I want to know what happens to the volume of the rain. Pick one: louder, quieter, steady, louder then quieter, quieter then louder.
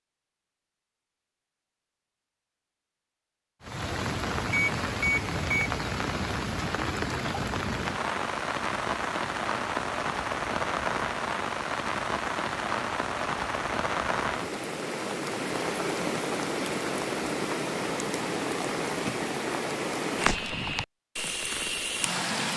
steady.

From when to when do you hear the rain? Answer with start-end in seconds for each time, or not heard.
3.6-22.5.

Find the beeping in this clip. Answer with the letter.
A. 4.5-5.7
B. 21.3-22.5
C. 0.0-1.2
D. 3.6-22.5
A.